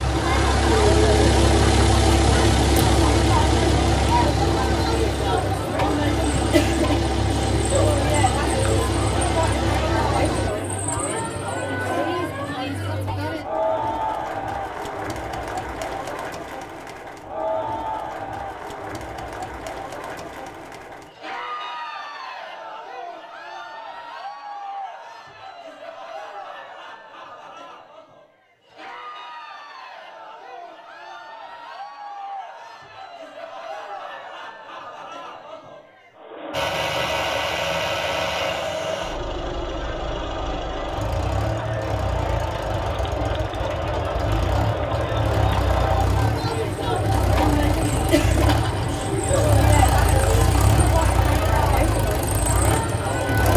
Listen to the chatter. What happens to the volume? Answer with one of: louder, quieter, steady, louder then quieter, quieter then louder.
quieter then louder.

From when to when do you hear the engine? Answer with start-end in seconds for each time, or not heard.
0.0-10.5, 36.5-53.5.